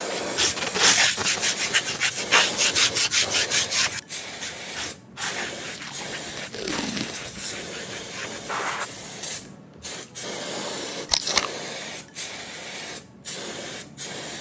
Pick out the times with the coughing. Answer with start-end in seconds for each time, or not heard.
not heard.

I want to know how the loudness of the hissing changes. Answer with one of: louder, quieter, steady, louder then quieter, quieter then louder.
steady.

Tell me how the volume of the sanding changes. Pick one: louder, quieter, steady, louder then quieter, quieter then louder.
quieter.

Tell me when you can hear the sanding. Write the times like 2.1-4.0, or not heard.
0.3-8.8.